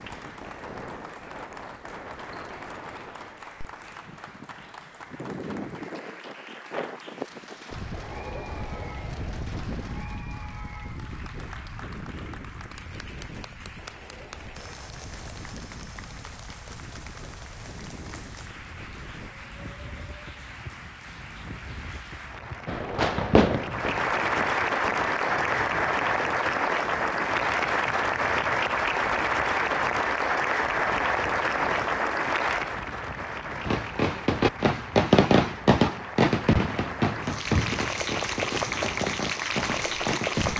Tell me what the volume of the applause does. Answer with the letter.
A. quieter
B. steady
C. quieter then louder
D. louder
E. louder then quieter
E.